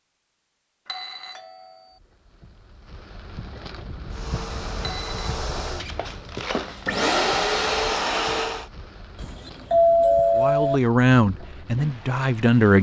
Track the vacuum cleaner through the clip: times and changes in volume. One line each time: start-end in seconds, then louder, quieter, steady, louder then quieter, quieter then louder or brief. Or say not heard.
4.1-8.7 louder.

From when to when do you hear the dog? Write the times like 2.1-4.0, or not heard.
not heard.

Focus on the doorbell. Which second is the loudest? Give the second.
10 s.